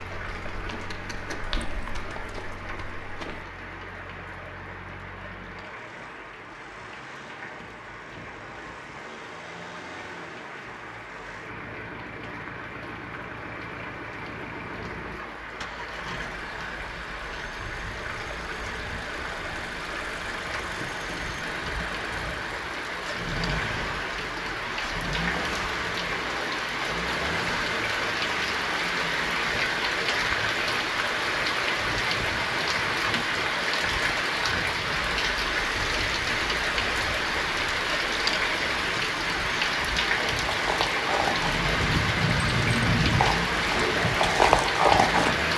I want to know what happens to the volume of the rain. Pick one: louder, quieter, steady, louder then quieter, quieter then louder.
louder.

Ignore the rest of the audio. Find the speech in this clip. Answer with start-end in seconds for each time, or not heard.
not heard.